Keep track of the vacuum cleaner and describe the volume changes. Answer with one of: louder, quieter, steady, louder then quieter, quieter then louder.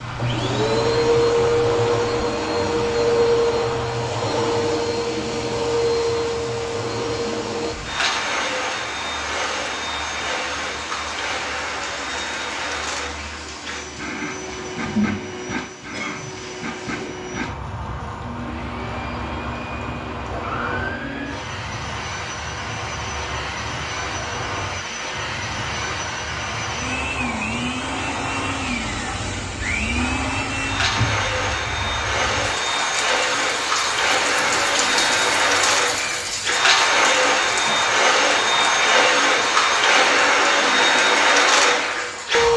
quieter then louder.